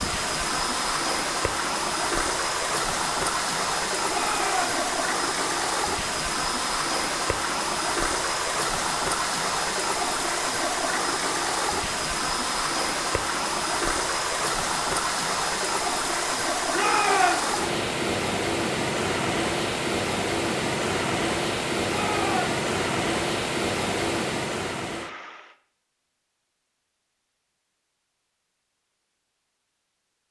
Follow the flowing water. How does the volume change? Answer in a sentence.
The loudness of the flowing water stays about the same.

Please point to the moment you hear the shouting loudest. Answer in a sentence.
The loudest moment of the shouting is at 17 seconds.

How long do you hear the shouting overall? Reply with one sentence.
You can hear the shouting for 2 seconds altogether.